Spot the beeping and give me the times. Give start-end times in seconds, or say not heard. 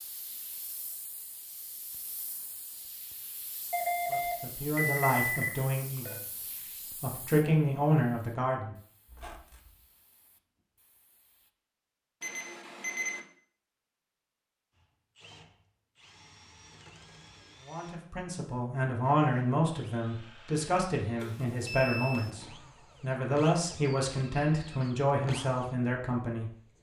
3.7-6.2, 12.2-13.2, 21.2-22.3.